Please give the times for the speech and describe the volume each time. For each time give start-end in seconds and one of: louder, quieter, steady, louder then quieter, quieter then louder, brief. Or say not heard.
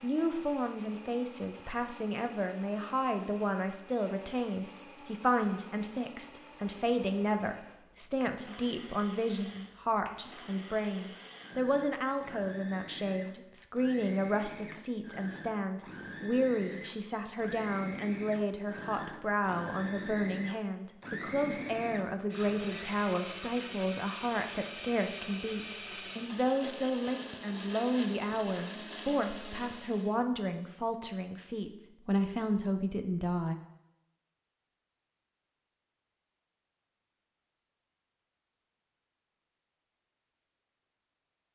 0.0-33.5 steady.